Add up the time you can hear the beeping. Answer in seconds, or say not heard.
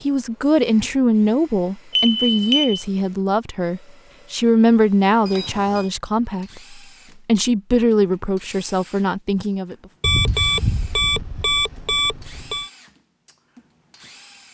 4 s.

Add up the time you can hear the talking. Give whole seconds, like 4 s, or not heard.
10 s.